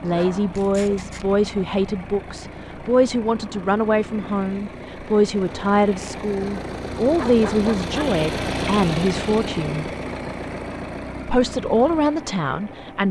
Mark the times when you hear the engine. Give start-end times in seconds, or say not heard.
0.0-13.0.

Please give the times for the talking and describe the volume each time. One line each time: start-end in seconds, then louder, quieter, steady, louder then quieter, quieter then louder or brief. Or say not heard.
0.0-9.8 steady
11.2-13.0 brief.